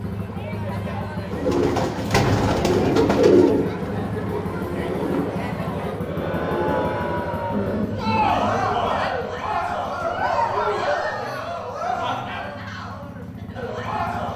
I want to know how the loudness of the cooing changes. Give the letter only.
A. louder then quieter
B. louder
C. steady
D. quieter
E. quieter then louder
D.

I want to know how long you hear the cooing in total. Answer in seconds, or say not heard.
8 s.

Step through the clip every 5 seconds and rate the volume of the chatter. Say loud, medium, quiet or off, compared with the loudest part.
medium, loud, loud.